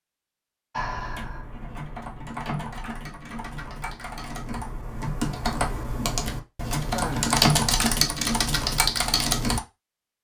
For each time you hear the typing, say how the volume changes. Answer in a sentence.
You can hear the typing from 0.8 to 9.6 s, getting louder.